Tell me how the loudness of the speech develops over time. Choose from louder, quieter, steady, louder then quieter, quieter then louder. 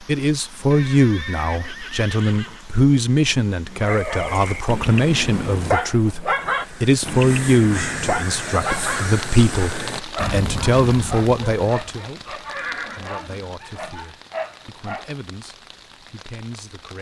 quieter.